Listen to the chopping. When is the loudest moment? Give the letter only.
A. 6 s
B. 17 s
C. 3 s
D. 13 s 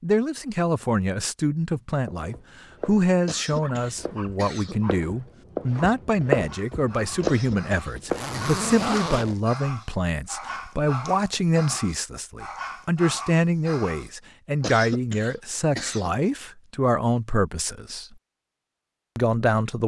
A.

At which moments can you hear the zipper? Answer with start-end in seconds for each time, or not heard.
8.1-9.4.